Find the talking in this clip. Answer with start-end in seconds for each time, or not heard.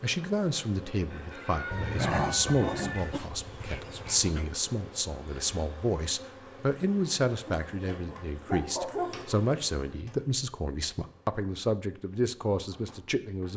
0.0-13.5.